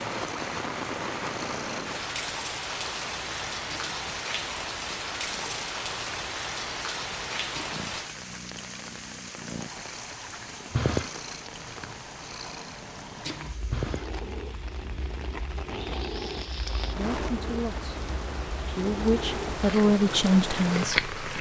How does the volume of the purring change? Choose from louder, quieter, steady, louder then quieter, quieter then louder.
louder.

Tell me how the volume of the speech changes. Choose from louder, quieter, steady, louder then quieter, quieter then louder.
quieter then louder.